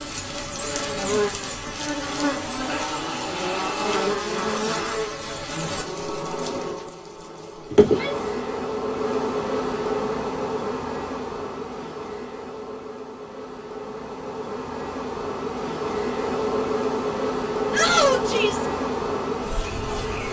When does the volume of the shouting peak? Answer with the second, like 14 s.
18 s.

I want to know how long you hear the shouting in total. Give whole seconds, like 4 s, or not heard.
3 s.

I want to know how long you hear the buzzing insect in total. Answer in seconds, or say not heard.
20 s.